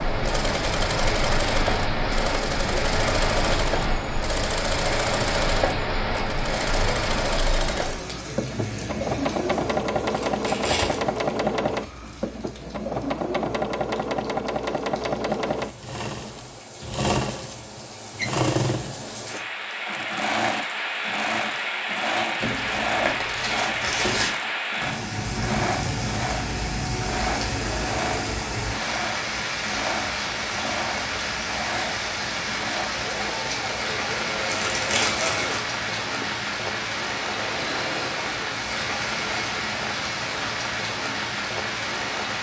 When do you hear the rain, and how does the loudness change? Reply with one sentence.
You can hear the rain from 0.0 to 42.3 s, getting quieter then louder.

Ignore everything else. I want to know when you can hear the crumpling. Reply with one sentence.
The crumpling can be heard from 10.1 to 11.0 s, from 22.4 to 24.3 s and from 34.5 to 35.6 s.